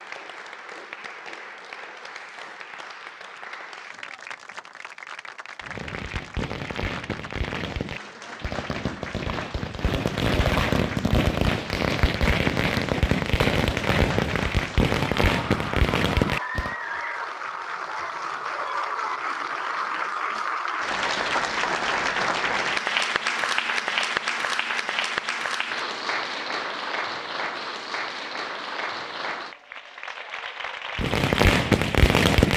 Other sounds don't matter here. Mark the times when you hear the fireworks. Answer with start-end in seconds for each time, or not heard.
5.6-16.8, 30.9-32.5.